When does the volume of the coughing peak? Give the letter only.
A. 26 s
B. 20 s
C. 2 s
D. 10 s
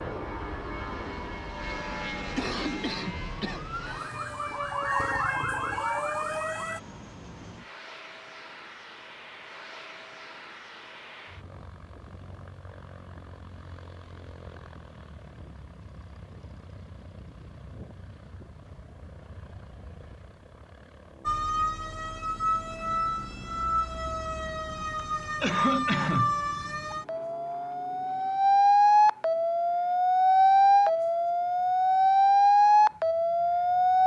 A.